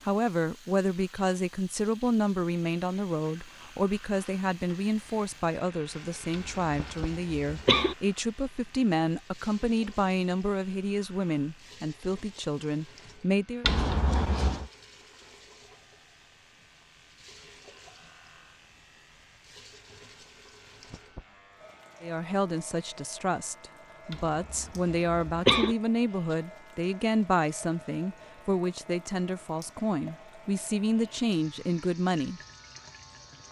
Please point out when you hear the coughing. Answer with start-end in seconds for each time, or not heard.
6.3-8.0, 13.6-14.7, 24.1-25.8.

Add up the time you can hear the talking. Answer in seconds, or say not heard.
24 s.